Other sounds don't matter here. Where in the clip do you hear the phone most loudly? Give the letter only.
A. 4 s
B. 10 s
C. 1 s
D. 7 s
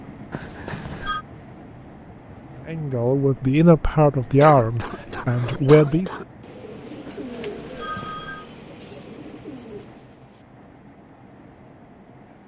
C.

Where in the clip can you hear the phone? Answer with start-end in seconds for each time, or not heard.
0.3-1.2, 7.0-8.4.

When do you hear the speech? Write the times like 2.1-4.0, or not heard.
2.6-6.2.